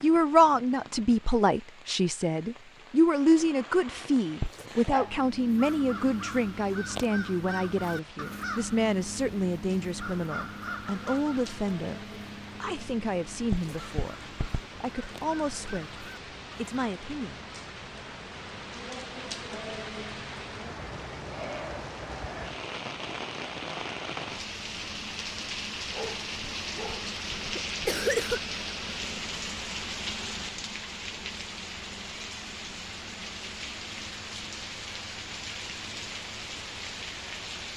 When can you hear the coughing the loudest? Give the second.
28 s.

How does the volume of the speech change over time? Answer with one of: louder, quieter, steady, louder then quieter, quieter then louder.
quieter.